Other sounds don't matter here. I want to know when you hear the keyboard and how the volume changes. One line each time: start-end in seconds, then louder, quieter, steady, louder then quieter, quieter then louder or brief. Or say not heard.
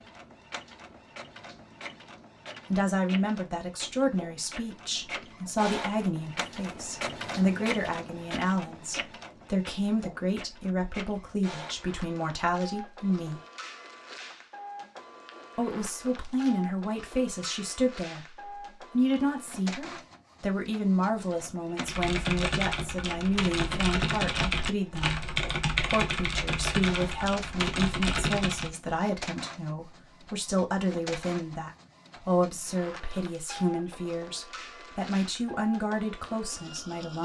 21.8-28.8 steady.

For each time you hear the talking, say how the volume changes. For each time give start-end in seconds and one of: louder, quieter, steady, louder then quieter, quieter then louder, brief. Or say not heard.
2.7-13.4 steady
15.6-37.2 steady.